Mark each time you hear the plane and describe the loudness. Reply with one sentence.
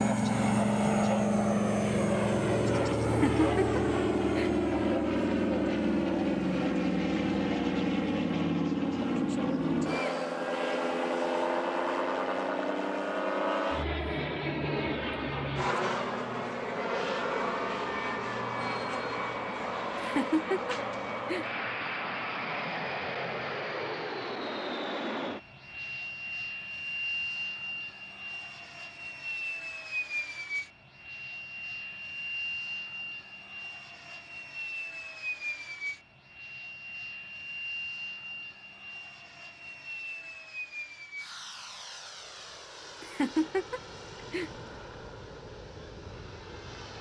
You can hear the plane from 0.0 to 46.9 s, getting quieter.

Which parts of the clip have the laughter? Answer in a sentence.
You can hear the laughter from 3.0 to 4.5 s, from 19.9 to 21.4 s and from 43.0 to 44.5 s.